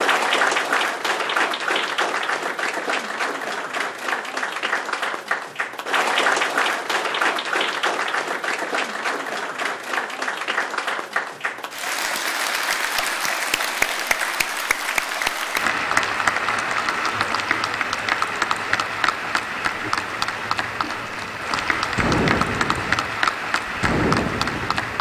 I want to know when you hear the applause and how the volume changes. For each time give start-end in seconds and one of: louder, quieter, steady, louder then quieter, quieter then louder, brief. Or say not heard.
0.0-24.9 steady.